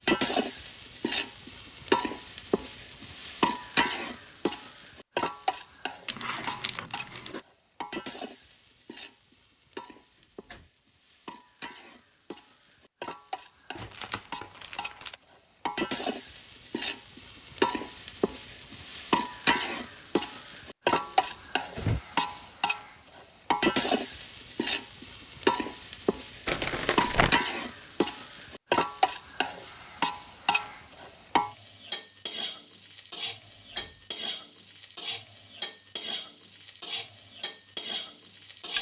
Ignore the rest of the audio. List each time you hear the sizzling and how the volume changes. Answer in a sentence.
The sizzling can be heard from 0.1 to 38.7 s, getting quieter then louder.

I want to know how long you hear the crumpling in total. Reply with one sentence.
The crumpling can be heard for 4 seconds in total.